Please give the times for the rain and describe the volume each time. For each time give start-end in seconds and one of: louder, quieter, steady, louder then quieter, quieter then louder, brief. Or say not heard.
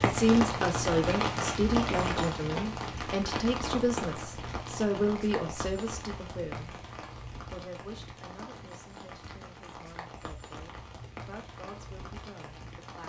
0.0-13.0 quieter.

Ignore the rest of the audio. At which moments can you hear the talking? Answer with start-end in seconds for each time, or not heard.
0.0-6.8, 7.5-13.0.